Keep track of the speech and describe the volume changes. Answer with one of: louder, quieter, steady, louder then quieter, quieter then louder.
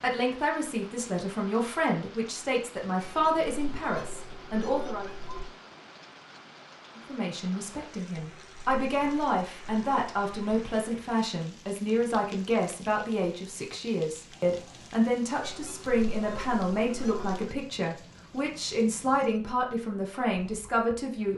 steady.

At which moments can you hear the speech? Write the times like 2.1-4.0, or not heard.
0.0-5.1, 7.0-21.3.